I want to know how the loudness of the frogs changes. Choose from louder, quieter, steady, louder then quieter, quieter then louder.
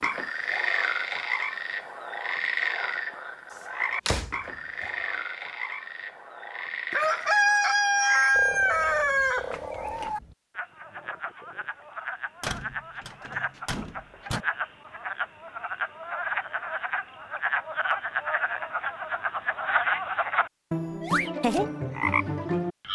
quieter then louder.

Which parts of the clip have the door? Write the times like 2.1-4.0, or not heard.
4.0-4.9, 12.4-14.4.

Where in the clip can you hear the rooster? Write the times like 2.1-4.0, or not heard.
6.9-10.2.